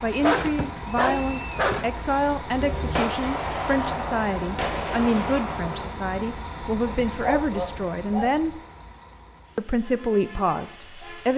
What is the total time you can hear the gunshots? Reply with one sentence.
The gunshots can be heard for 3 seconds in total.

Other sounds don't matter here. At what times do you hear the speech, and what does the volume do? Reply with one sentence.
You can hear the speech from 0.0 to 8.6 s, at a steady volume; and briefly from 9.6 to 11.3 s.